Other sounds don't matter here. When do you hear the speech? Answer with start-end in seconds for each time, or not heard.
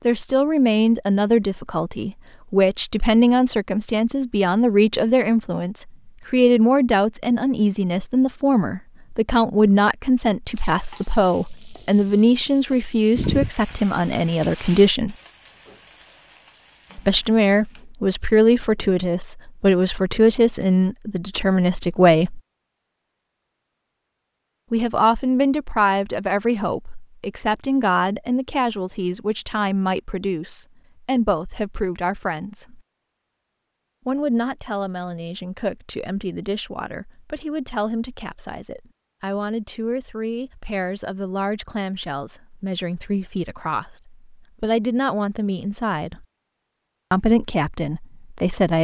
0.1-15.2, 16.9-22.4, 24.7-32.8, 34.0-46.2, 47.1-48.7.